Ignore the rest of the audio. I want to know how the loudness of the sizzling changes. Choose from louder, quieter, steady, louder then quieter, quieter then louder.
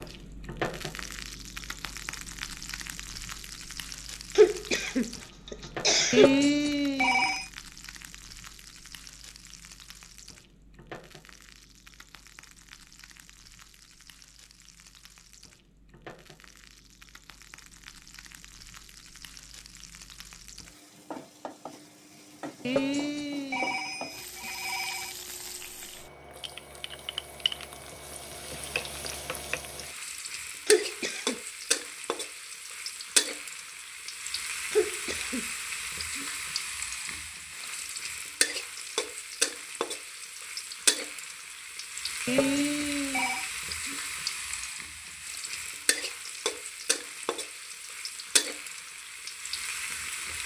quieter then louder.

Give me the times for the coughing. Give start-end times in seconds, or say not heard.
4.3-6.3, 30.6-31.4, 34.7-35.5.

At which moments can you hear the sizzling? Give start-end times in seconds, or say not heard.
0.0-50.4.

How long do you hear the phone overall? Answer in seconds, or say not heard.
5 s.